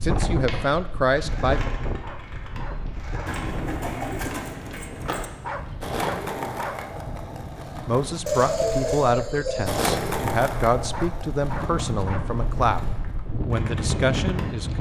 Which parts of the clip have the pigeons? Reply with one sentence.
The pigeons can be heard from 3.2 to 5.3 s and from 8.2 to 9.9 s.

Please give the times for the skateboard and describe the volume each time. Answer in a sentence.
The skateboard can be heard from 0.1 to 14.7 s, getting louder then quieter.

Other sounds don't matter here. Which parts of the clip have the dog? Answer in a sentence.
The dog can be heard from 2.0 to 3.4 s, from 5.4 to 6.8 s and from 10.9 to 12.2 s.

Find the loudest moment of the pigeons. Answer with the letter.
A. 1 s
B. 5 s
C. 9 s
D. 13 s
C.